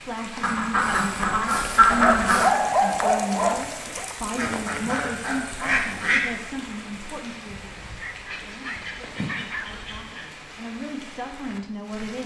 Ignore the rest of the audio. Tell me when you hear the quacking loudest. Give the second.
2 s.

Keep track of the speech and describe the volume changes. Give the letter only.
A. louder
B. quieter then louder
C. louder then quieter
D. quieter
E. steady
B.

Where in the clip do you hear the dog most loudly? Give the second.
3 s.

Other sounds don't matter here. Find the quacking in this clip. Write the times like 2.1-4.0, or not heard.
0.4-2.5, 4.3-6.2, 8.3-10.2.